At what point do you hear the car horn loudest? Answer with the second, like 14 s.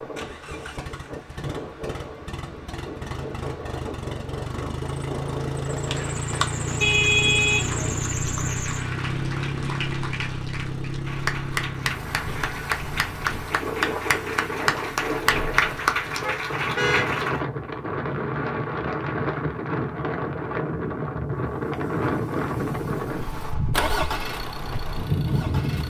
7 s.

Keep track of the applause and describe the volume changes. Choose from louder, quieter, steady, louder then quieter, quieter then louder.
louder.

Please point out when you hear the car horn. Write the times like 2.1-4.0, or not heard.
6.8-8.6, 16.2-17.2.